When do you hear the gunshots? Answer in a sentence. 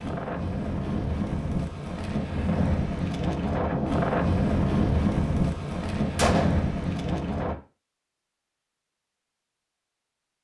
You can hear the gunshots from 6.2 to 6.7 s.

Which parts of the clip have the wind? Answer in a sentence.
The wind can be heard from 0.0 to 7.5 s.